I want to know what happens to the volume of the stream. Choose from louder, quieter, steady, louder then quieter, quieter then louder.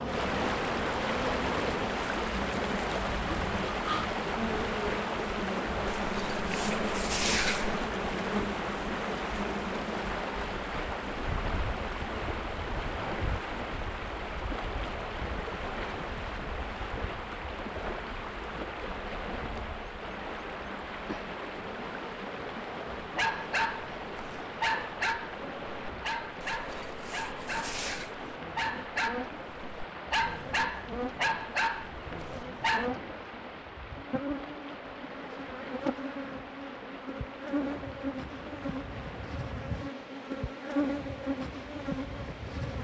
quieter.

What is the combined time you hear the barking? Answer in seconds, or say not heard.
10 s.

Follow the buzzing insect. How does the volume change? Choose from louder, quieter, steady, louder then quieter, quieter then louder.
quieter then louder.